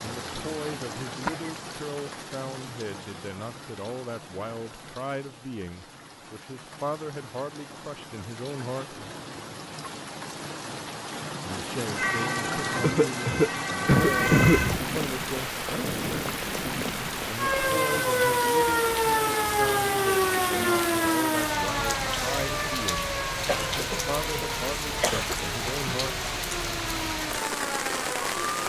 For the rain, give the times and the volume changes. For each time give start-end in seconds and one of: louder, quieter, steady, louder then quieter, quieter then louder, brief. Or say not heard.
0.0-28.6 louder.